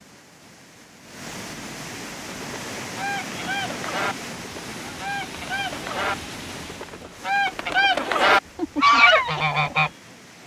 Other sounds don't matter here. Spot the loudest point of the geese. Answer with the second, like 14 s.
9 s.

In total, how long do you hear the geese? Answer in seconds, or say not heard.
8 s.